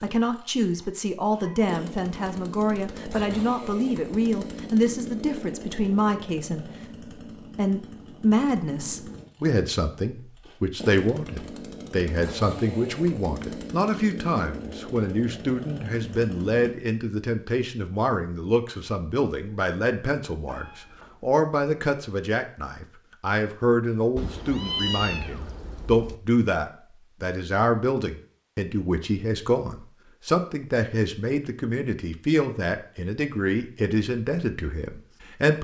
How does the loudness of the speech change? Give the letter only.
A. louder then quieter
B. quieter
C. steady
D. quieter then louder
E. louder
C.